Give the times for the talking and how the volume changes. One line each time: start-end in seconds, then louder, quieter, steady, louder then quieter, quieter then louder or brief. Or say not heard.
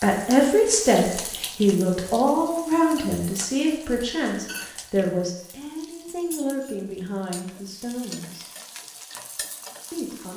0.0-8.5 quieter
9.9-10.3 brief.